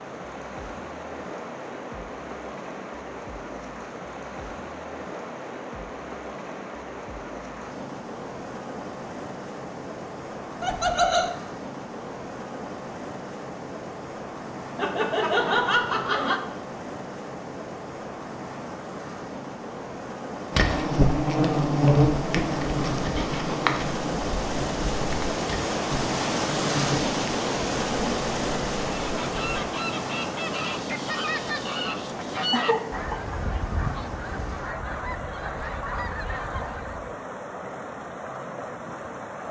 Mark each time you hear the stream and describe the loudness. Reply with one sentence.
You can hear the stream from 0.0 to 39.4 s, getting louder then quieter.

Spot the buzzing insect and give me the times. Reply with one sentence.
You can hear the buzzing insect from 20.5 to 29.6 s.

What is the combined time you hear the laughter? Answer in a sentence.
The laughter can be heard for 3 seconds in total.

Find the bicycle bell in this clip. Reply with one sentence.
You can't hear the bicycle bell here.